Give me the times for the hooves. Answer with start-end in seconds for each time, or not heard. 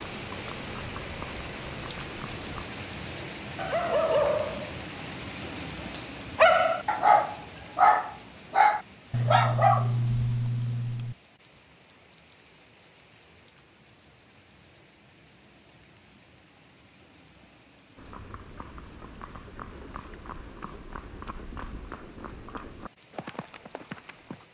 0.2-2.6, 17.9-24.4.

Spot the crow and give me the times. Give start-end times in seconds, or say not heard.
not heard.